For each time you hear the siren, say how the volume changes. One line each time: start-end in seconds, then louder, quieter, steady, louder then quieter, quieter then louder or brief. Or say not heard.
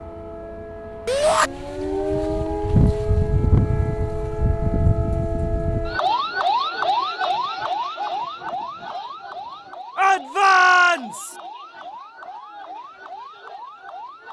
0.0-14.2 quieter.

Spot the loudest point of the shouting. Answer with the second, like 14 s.
11 s.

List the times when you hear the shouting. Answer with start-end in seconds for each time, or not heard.
1.1-1.5, 9.9-11.3.